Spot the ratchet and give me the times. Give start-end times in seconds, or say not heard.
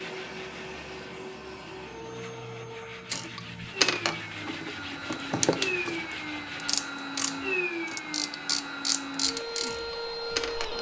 3.1-10.7.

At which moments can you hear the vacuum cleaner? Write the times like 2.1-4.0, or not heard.
0.0-10.7.